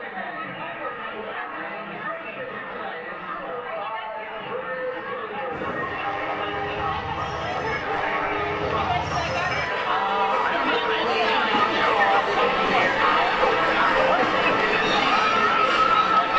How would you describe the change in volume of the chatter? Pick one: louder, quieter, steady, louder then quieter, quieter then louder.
louder.